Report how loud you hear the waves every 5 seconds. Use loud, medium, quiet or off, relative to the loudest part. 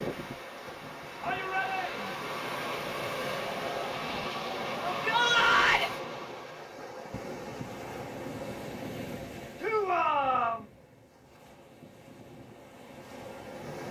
loud, loud, medium.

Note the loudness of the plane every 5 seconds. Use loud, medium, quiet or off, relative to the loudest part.
loud, loud, off.